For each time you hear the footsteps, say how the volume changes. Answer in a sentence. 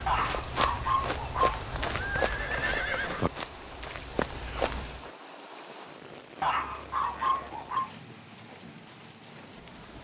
You can hear the footsteps from 0.0 to 5.1 s, getting quieter then louder.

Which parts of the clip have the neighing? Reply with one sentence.
The neighing can be heard from 1.7 to 3.3 s.